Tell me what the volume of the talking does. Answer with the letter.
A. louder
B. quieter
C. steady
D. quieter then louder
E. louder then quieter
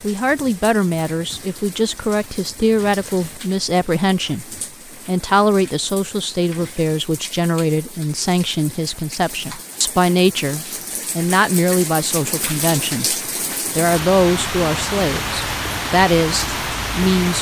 C.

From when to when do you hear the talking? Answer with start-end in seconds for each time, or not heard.
0.0-4.5, 5.0-13.2, 13.8-17.3.